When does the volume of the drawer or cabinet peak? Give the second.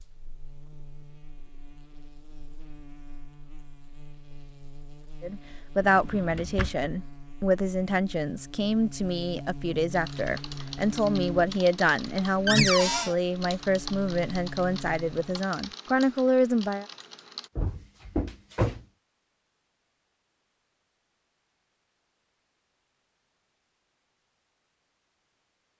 13 s.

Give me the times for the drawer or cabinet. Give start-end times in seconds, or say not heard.
5.8-6.9, 12.4-13.2, 17.6-18.9.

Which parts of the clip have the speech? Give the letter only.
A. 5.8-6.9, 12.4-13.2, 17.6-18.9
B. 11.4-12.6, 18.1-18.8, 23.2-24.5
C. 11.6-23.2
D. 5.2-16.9
D.